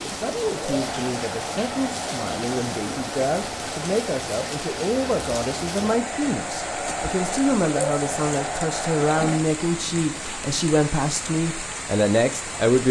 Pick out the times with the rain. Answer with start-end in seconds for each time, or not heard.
0.0-12.8.